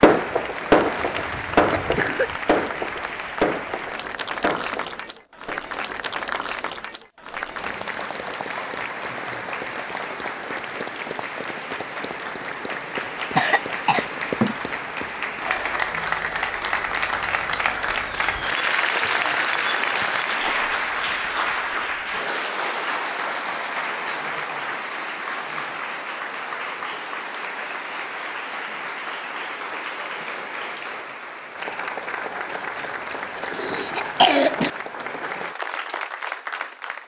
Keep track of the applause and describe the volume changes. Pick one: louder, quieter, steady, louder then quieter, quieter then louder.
louder then quieter.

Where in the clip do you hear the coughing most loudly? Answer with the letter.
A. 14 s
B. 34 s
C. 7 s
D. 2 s
B.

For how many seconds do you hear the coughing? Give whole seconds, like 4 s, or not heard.
4 s.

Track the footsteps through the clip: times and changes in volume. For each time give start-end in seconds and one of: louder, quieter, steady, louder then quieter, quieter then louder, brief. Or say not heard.
not heard.